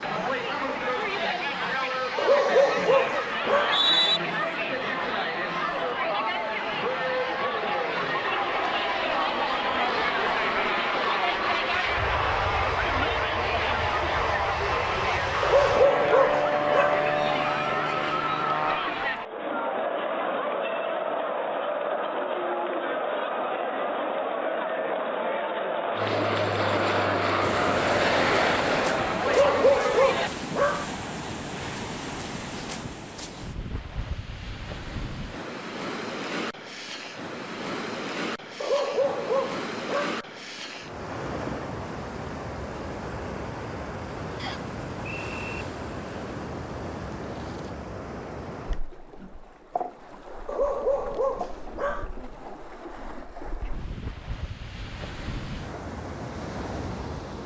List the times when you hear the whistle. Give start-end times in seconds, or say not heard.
3.4-4.2, 44.4-45.6.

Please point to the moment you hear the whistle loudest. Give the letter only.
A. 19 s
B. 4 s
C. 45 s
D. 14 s
B.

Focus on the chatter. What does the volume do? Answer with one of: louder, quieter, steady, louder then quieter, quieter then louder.
steady.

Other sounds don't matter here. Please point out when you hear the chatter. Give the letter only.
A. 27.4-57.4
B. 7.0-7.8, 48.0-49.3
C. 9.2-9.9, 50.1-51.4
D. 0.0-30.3
D.